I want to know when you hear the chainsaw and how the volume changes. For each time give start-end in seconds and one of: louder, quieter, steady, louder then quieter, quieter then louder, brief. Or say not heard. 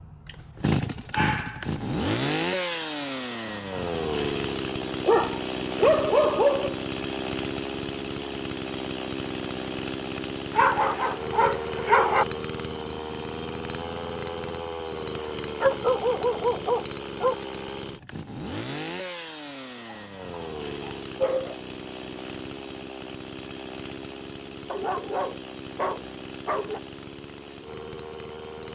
0.0-28.7 quieter.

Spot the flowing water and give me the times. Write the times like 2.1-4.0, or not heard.
not heard.